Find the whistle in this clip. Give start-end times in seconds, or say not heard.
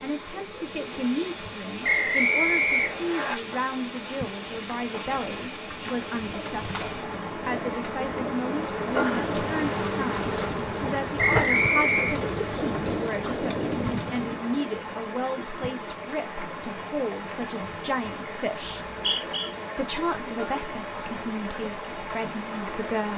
1.8-3.4, 11.2-12.2, 18.6-19.5.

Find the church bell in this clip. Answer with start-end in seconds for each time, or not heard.
not heard.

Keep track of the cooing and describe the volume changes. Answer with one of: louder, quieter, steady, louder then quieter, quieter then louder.
louder.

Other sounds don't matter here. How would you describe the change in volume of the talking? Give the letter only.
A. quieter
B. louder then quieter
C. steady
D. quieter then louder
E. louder
C.